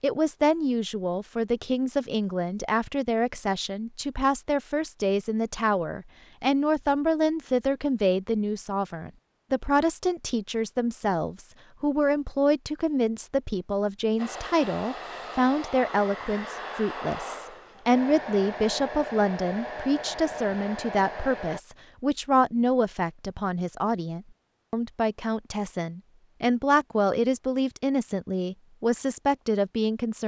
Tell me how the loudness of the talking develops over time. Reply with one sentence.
The volume of the talking stays about the same.